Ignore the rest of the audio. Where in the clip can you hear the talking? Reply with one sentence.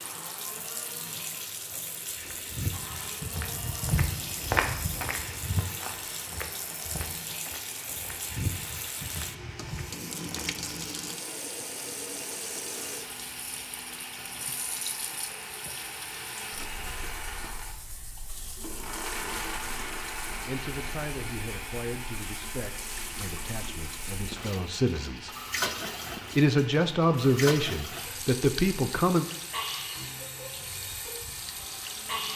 The talking can be heard from 20.4 to 25.4 s and from 26.3 to 29.2 s.